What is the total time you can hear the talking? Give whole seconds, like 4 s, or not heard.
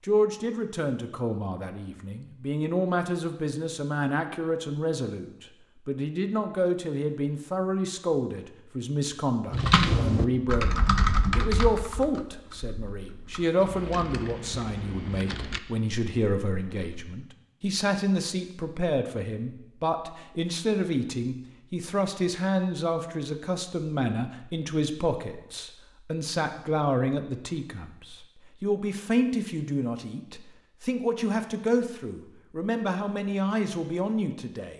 35 s.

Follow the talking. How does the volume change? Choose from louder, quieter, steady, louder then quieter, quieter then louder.
steady.